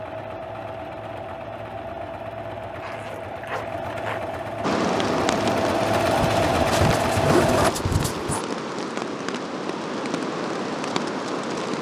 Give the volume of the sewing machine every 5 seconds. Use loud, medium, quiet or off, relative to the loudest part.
medium, loud, off.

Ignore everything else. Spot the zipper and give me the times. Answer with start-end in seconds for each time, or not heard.
2.8-4.2, 6.2-8.4.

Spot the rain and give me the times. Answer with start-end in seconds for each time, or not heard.
4.6-11.7.